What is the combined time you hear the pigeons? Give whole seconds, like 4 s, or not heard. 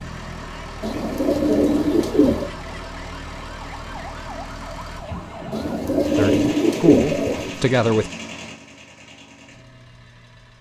4 s.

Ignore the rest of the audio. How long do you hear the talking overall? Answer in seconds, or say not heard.
2 s.